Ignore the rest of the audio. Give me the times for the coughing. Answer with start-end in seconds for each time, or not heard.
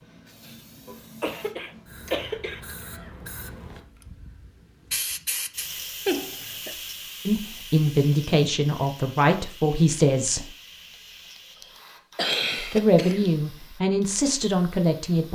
0.8-2.6, 6.0-6.8, 11.6-13.3.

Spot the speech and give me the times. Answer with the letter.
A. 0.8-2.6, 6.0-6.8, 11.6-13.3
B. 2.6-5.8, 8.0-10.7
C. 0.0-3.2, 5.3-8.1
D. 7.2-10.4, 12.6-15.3
D.